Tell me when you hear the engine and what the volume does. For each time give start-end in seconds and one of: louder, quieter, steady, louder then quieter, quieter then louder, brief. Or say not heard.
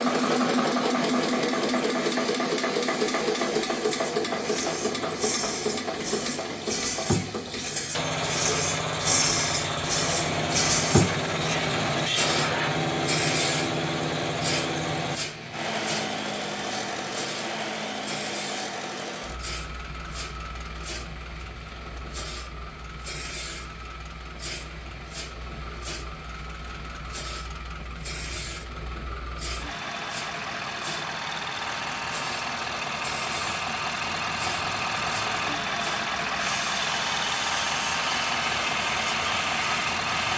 0.0-40.3 quieter then louder.